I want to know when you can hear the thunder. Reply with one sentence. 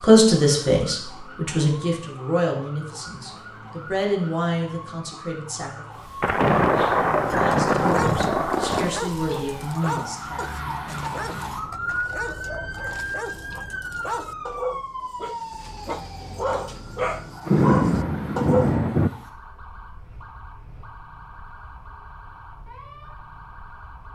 The thunder can be heard from 6.2 to 9.0 s and from 17.4 to 19.1 s.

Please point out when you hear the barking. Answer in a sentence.
The barking can be heard from 7.3 to 18.8 s.